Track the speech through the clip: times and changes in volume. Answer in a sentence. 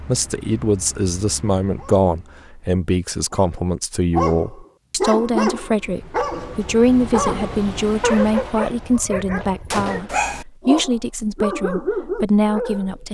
You can hear the speech from 0.0 to 13.0 s, at a steady volume.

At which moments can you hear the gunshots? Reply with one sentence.
The gunshots can be heard from 9.7 to 10.2 s.